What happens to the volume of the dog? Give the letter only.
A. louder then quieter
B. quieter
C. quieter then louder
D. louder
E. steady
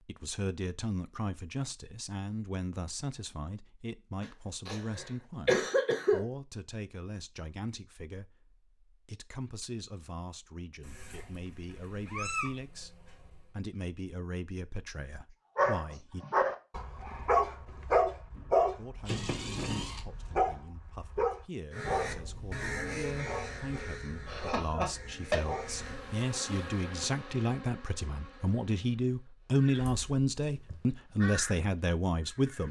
B.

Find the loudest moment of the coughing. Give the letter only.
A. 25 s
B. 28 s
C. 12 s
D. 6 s
D.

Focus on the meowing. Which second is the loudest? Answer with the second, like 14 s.
12 s.